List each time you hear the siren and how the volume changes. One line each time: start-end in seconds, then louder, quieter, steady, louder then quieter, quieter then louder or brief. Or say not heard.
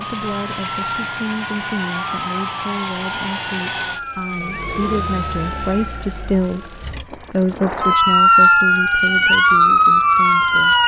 0.0-10.8 louder.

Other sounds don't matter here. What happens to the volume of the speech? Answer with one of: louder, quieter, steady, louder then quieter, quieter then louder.
louder then quieter.